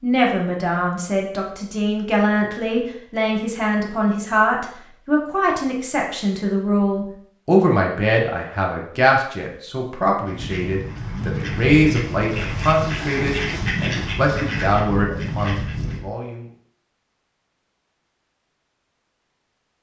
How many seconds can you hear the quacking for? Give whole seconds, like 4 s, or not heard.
6 s.